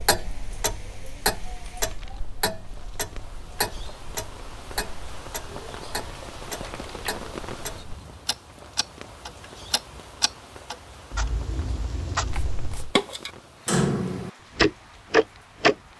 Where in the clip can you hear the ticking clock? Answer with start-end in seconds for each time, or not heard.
0.0-15.8.